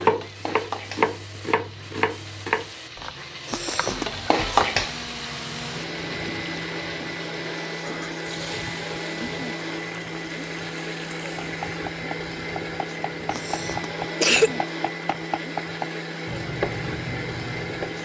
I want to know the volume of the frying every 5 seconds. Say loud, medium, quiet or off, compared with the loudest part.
loud, medium, quiet, off.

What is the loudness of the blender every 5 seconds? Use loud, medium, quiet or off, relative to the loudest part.
medium, loud, loud, loud.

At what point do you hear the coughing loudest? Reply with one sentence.
The loudest moment of the coughing is at 14 seconds.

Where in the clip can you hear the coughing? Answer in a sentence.
You can hear the coughing from 3.5 to 4.0 s and from 13.3 to 14.5 s.